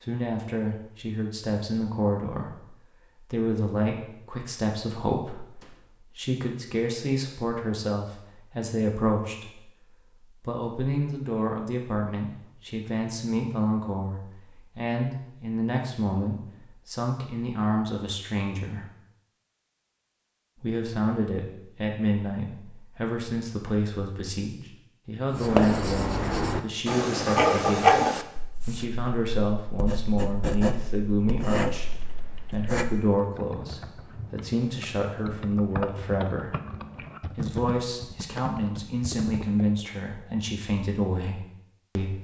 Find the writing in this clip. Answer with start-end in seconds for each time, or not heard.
25.3-33.0.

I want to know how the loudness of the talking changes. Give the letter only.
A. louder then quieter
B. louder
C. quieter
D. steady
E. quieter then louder
D.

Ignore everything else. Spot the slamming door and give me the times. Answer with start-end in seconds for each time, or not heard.
5.6-6.0.